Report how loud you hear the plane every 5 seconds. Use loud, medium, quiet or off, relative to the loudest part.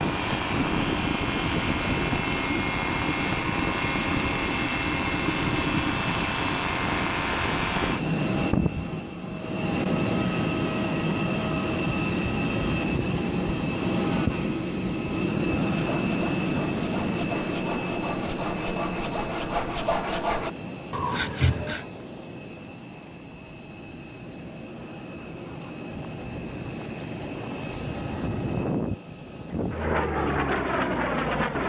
loud, loud, loud, loud, quiet, medium, loud.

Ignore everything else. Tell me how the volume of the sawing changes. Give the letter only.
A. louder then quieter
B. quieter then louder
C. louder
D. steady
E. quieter
C.